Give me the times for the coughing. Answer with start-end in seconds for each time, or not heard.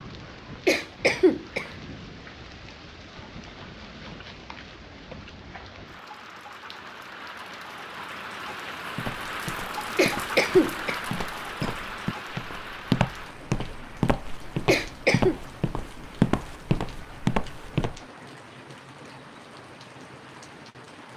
0.7-1.6, 9.9-11.7, 14.7-15.3.